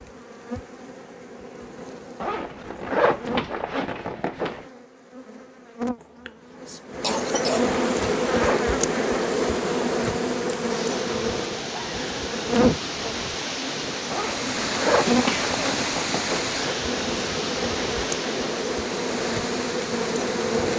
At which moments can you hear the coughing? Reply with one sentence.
The coughing can be heard from 6.0 to 7.8 s and from 15.1 to 15.6 s.